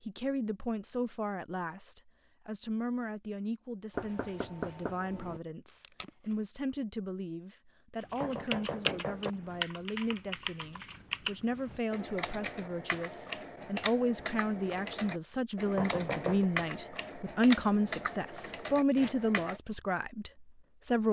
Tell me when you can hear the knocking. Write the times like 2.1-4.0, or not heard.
4.0-5.4, 8.2-9.3, 15.8-16.5.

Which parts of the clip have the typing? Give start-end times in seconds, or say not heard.
8.0-19.6.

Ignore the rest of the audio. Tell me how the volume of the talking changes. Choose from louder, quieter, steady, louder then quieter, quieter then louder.
louder.